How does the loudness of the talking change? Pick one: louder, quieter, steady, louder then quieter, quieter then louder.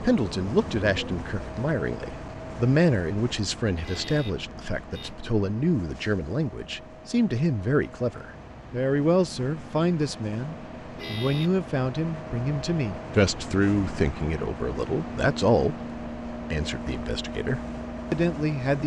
steady.